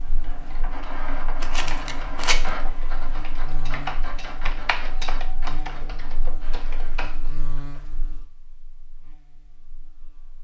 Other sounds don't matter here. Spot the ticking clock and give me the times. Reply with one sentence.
The ticking clock can't be heard in this clip.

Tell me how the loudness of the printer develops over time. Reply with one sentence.
The volume of the printer goes down.